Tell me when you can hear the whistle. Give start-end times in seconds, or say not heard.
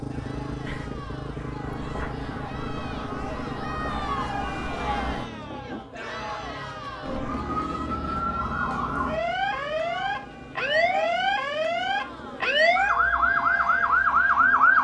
not heard.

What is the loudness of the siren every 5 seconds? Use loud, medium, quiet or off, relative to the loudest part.
quiet, medium, loud.